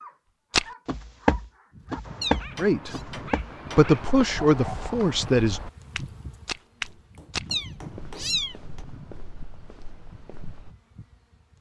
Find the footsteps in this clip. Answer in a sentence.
You can hear the footsteps from 0.5 to 10.7 s.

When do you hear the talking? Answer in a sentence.
You can hear the talking from 2.5 to 3.0 s and from 3.8 to 5.6 s.